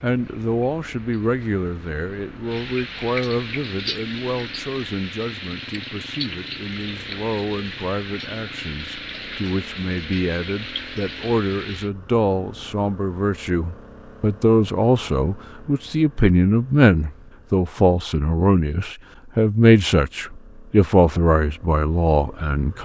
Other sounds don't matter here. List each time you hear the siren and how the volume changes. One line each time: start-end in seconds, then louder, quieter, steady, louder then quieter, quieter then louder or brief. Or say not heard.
not heard.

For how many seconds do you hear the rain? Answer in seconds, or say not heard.
12 s.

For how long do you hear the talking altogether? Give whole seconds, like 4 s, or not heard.
23 s.